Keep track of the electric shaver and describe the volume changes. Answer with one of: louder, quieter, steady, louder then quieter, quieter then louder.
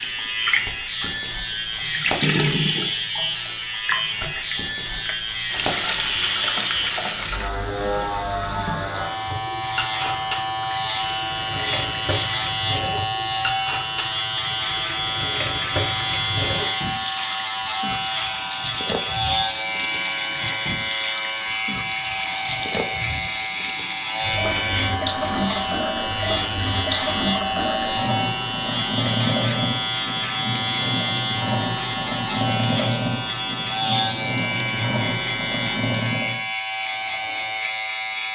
steady.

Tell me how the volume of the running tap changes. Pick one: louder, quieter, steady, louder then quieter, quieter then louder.
steady.